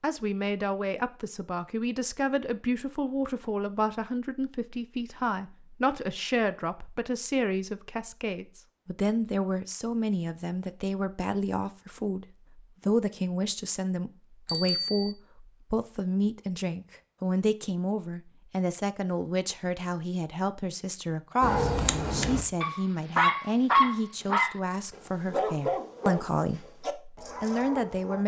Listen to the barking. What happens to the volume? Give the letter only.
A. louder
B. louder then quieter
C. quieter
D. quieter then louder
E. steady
B.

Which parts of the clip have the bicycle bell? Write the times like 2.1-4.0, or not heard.
14.4-15.1.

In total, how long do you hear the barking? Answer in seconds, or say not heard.
7 s.